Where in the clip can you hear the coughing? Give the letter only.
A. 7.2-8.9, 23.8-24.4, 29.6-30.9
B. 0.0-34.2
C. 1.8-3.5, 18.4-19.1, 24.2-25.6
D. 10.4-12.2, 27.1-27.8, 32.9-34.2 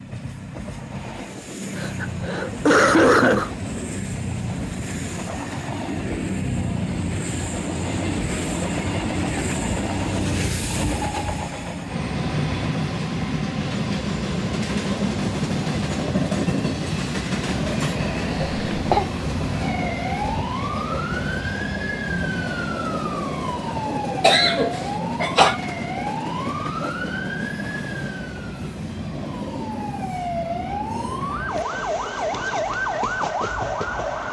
C.